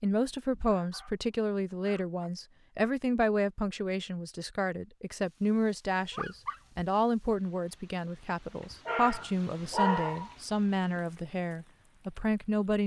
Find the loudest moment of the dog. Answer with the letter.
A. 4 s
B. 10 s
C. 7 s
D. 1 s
B.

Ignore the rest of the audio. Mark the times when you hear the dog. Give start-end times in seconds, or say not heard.
0.3-1.1, 1.8-2.3, 6.1-6.8, 8.8-10.3.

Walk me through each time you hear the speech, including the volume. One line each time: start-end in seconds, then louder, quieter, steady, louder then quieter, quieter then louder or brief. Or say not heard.
0.0-12.8 steady.